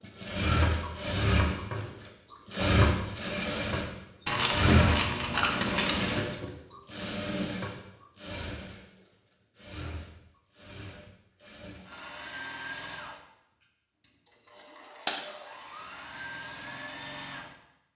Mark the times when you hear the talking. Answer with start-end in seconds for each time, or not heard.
not heard.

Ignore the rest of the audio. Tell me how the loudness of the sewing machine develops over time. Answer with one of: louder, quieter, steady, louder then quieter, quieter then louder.
quieter.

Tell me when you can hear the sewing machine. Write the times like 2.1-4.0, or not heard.
0.0-17.5.